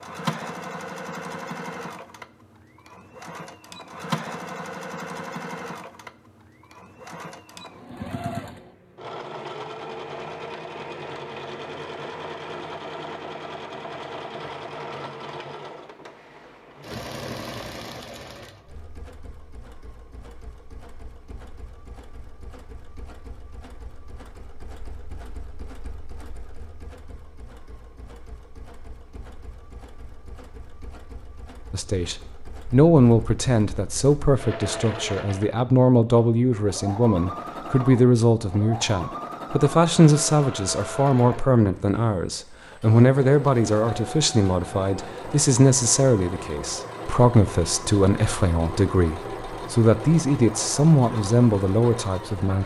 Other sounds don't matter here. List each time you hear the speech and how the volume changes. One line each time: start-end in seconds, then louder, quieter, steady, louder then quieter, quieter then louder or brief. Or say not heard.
31.7-52.6 steady.